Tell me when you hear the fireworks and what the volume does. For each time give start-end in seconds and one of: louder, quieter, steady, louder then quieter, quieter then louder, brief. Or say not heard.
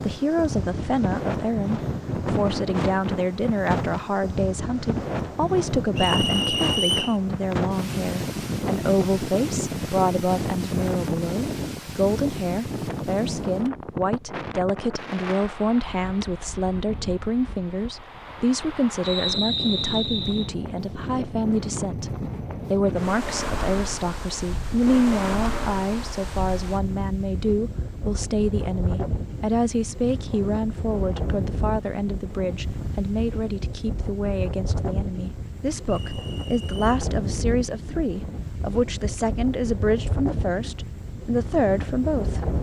not heard.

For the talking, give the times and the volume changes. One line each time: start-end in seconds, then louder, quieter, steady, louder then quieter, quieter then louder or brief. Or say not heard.
0.0-42.5 steady.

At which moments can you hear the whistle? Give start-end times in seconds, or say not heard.
6.0-7.2, 19.0-20.5, 35.9-36.9.